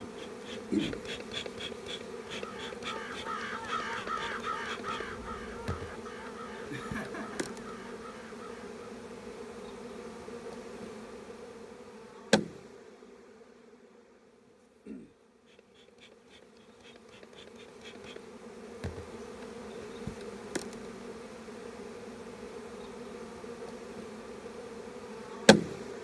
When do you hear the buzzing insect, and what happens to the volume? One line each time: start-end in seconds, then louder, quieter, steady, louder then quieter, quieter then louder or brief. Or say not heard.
0.0-26.0 quieter then louder.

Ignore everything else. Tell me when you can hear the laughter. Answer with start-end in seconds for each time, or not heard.
6.7-7.5.